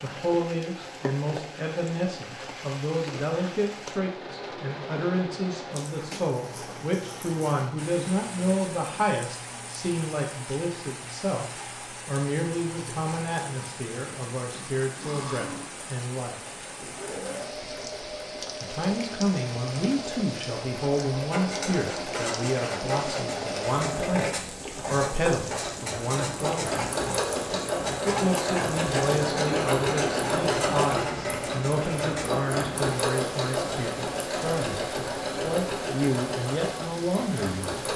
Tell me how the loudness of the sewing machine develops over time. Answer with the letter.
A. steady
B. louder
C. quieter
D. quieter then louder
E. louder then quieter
B.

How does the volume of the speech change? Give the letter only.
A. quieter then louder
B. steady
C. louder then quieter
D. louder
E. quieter
B.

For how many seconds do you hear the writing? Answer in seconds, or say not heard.
11 s.